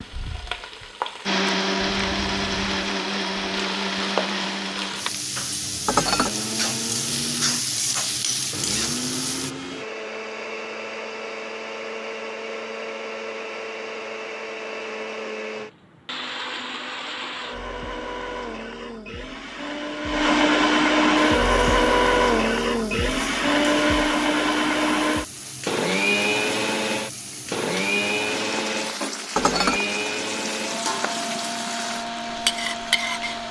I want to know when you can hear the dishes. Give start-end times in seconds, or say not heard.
5.8-6.3, 29.4-29.8.